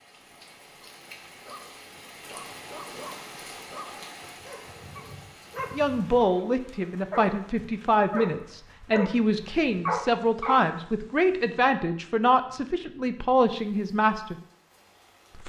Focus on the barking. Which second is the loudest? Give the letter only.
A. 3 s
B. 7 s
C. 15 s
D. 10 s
D.